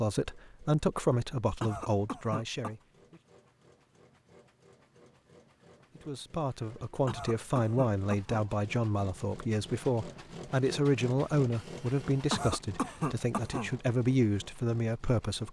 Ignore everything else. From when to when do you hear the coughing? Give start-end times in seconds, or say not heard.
1.6-2.8, 7.0-8.5, 12.3-13.8.